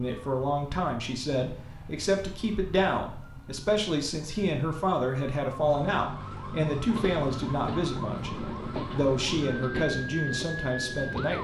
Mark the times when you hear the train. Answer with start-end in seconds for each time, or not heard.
6.8-11.3.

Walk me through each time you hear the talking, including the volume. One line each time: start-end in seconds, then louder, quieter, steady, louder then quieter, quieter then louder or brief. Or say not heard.
0.0-11.3 steady.